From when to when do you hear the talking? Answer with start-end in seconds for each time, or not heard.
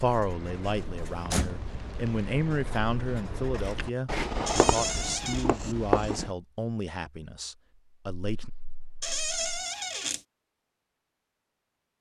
0.0-8.5.